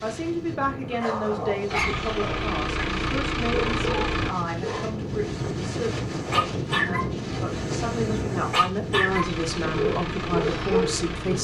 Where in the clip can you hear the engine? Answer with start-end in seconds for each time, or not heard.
1.6-4.3, 9.1-11.3.